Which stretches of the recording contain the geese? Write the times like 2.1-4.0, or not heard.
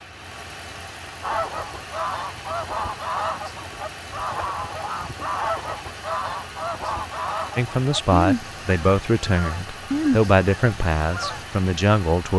1.2-11.4.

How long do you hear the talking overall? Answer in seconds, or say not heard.
5 s.